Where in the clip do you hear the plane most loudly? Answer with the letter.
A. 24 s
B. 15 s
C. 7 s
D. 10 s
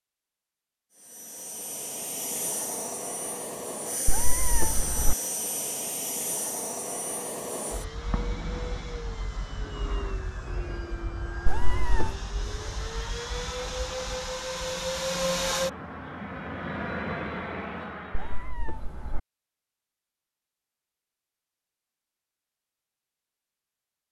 B.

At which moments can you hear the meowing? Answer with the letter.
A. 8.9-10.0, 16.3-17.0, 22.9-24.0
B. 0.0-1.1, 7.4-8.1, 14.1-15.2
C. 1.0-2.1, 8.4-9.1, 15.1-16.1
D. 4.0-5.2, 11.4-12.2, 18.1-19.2
D.